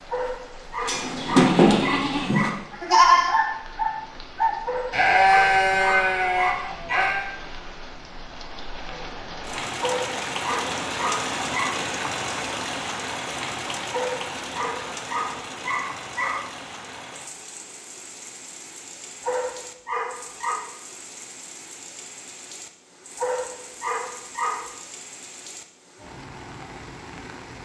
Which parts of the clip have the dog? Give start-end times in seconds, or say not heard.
0.1-2.5, 4.7-7.2, 9.8-11.8, 13.9-16.4, 19.2-20.7, 23.1-24.8.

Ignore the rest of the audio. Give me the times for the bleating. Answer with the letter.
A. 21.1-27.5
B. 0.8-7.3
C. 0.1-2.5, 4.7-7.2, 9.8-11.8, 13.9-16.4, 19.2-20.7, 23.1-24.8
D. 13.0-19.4
B.